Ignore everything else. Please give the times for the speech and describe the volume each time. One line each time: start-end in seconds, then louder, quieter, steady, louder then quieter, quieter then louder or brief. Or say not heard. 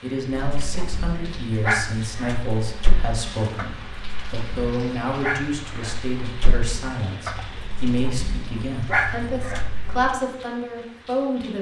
0.0-11.5 steady.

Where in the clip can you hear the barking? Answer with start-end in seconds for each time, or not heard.
0.3-10.1.